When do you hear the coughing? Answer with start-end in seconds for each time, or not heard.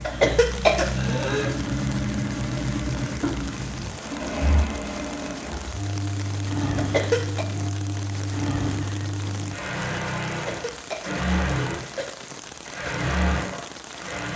0.1-1.6, 6.8-7.5, 10.3-12.1.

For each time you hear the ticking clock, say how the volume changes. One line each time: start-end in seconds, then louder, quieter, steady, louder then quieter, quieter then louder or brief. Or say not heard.
not heard.